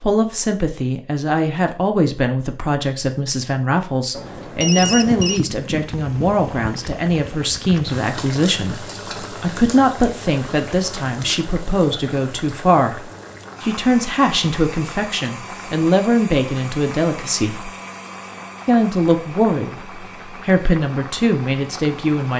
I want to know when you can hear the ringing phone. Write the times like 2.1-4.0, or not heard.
4.1-5.4.